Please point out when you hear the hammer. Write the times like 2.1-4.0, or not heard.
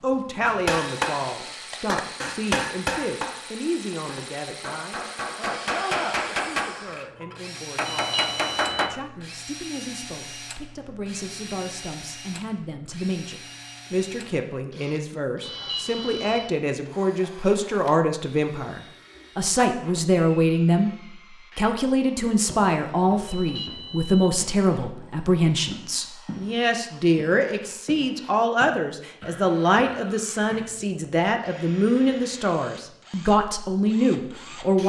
0.5-8.9.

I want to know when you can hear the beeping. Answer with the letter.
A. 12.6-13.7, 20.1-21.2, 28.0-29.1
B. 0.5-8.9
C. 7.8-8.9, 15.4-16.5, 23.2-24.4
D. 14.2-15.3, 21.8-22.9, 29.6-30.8
C.